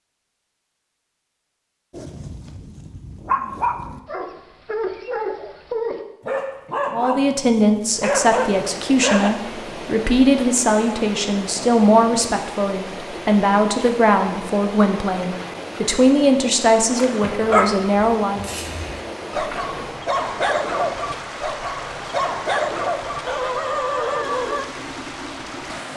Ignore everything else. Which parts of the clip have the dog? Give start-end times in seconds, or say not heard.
1.9-9.3, 17.4-24.6.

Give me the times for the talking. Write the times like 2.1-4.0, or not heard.
6.9-18.5.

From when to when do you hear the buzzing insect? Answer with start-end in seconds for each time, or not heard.
not heard.